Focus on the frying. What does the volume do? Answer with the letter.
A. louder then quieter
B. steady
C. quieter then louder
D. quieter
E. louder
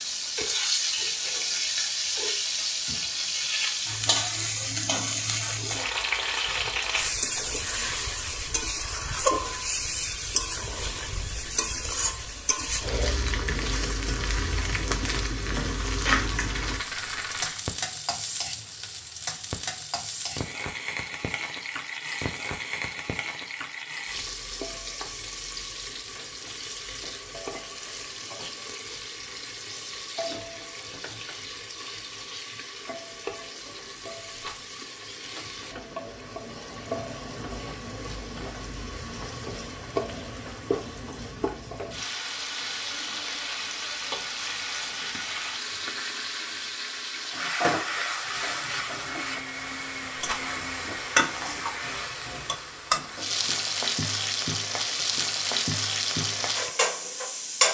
C.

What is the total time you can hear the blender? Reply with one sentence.
You can hear the blender for 3 seconds altogether.